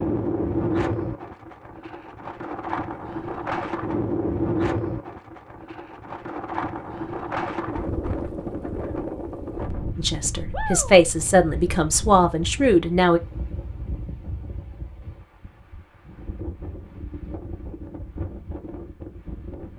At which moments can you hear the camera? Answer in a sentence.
You can't hear the camera here.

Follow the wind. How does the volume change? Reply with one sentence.
The loudness of the wind goes down.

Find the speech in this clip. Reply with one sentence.
You can hear the speech from 9.9 to 13.2 s.